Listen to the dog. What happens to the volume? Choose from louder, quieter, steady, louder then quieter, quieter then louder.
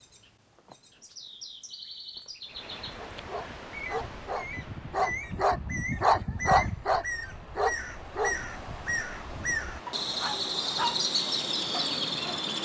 louder then quieter.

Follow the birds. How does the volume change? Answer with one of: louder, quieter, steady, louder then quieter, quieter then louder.
louder.